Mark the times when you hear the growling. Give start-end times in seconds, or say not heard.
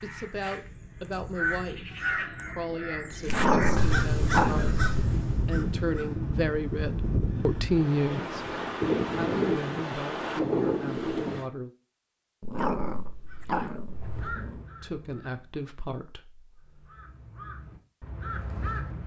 3.2-4.8, 12.4-14.7.